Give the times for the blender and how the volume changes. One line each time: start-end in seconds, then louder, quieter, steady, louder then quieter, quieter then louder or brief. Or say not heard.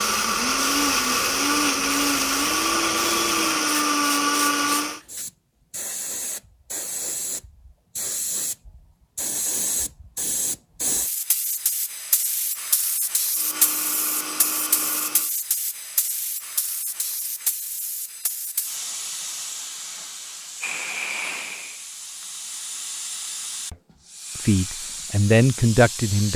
0.0-5.0 steady
13.3-15.3 brief.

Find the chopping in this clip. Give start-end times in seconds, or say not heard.
not heard.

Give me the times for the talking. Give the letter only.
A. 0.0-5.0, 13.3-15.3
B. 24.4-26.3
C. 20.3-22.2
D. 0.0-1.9
B.